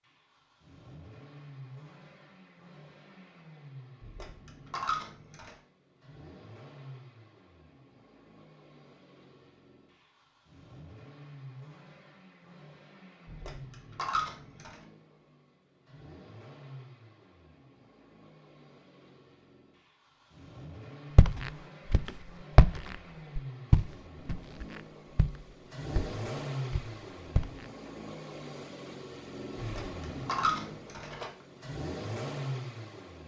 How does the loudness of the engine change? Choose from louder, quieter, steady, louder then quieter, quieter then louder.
louder.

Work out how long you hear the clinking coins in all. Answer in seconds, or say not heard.
5 s.